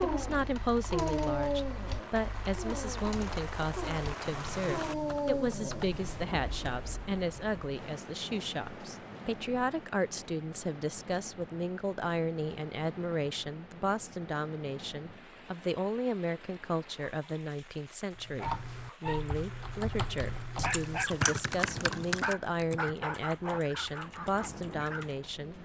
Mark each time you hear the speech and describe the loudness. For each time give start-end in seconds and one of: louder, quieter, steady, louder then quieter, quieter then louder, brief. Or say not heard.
0.0-25.6 steady.